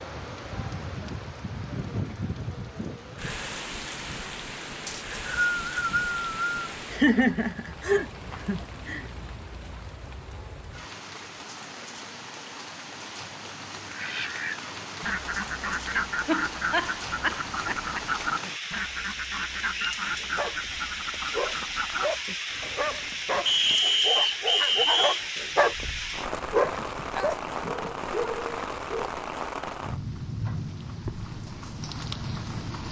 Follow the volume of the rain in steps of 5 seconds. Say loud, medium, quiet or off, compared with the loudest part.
loud, medium, medium, loud, loud, loud, loud.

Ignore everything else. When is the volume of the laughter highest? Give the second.
7 s.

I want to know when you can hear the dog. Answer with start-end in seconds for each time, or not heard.
20.2-29.1.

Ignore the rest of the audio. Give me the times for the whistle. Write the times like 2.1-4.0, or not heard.
4.8-6.6, 23.4-25.2.